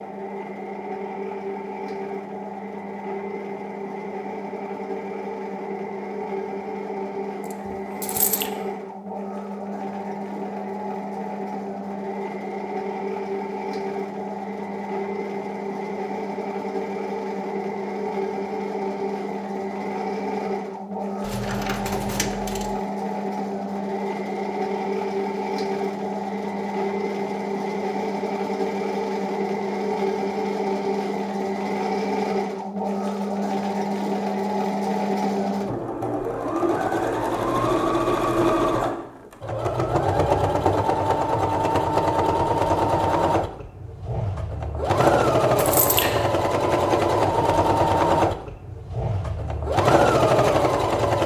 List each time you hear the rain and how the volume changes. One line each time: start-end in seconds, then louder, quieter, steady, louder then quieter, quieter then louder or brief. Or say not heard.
not heard.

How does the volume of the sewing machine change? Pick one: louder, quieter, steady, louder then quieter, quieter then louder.
louder.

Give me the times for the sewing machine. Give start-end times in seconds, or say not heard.
0.0-51.2.